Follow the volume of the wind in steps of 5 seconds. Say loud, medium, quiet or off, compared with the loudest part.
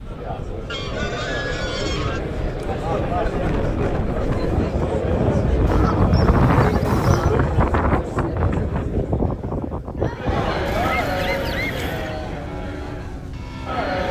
medium, loud, medium.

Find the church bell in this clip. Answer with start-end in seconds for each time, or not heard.
12.4-13.9.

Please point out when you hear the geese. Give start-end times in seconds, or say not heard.
0.7-2.2, 5.7-7.4, 10.7-12.2.